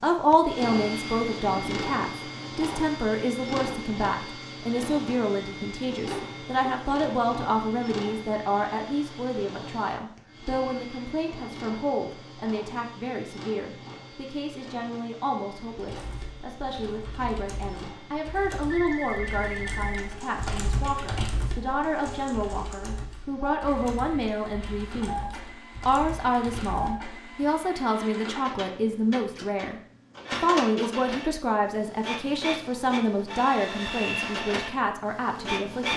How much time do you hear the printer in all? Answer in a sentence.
You can hear the printer for 36 seconds altogether.